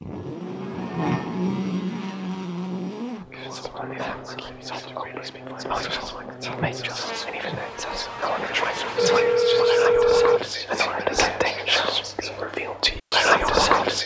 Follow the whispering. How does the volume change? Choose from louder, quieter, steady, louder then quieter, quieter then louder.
louder.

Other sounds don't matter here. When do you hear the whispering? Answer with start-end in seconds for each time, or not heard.
3.3-14.0.